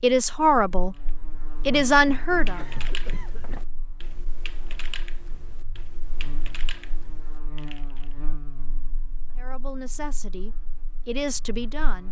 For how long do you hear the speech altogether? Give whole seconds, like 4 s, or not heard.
5 s.